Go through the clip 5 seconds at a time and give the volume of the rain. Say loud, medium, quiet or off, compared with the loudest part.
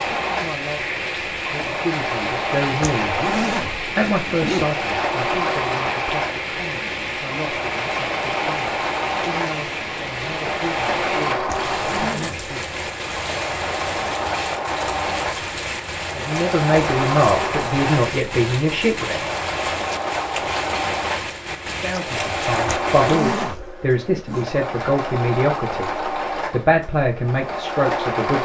loud, loud, loud, loud, loud, off.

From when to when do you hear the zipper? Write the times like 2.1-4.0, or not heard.
2.8-4.7, 11.4-12.4, 22.6-24.4.